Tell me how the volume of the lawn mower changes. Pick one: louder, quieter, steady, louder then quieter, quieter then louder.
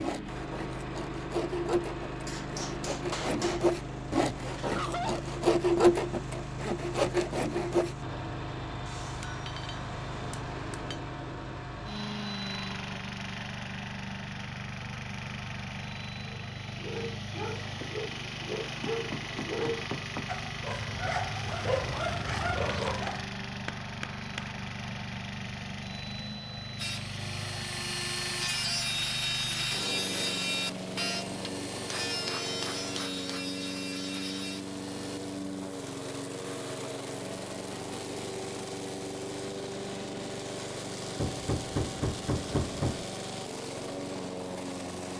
steady.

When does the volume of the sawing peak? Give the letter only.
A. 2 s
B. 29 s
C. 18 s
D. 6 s
D.